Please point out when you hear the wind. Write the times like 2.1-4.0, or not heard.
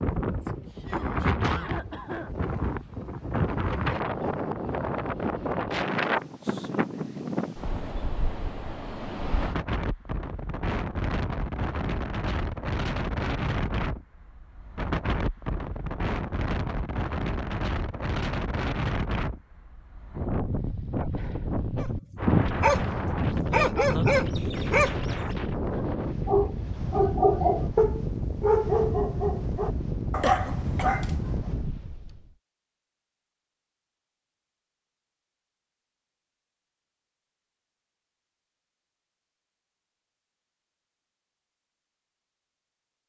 0.0-32.3.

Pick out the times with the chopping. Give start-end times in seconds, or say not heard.
not heard.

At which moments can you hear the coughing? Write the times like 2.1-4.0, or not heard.
0.3-2.3, 30.2-30.9.